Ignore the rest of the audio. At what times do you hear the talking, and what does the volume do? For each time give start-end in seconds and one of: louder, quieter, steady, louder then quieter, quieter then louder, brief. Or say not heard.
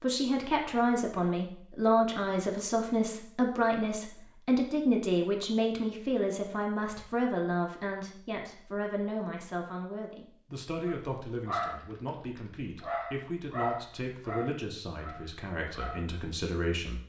0.0-17.0 quieter.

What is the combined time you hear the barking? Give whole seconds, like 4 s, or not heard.
5 s.